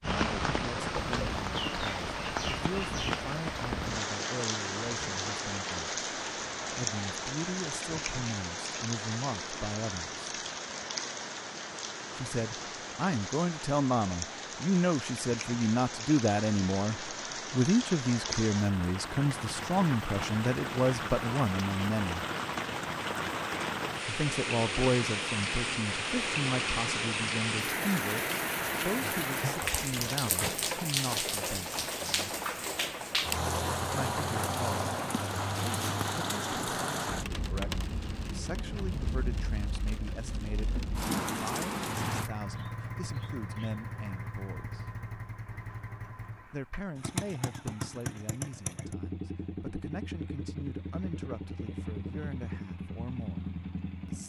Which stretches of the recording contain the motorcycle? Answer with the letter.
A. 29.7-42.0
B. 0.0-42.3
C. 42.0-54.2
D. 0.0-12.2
C.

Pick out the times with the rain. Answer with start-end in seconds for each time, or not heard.
0.0-42.3.